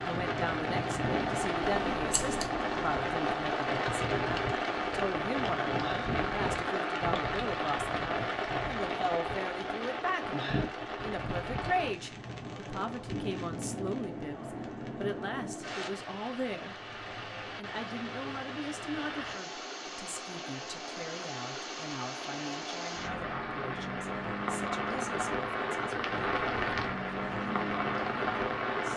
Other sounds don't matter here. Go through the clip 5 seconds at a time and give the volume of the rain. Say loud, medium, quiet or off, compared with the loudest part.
loud, loud, medium, medium, medium, loud.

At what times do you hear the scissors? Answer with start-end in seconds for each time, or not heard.
1.6-2.5.